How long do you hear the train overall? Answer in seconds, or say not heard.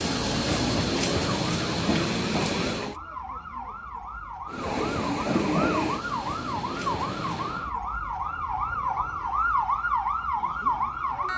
6 s.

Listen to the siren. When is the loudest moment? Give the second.
10 s.